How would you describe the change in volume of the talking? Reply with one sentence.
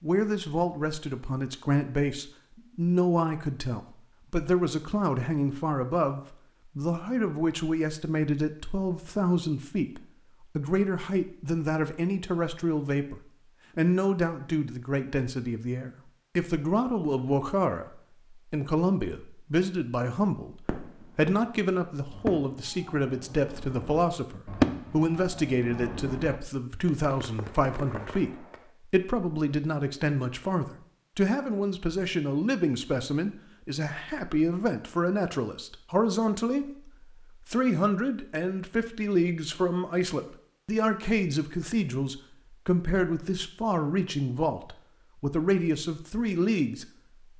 The loudness of the talking stays about the same.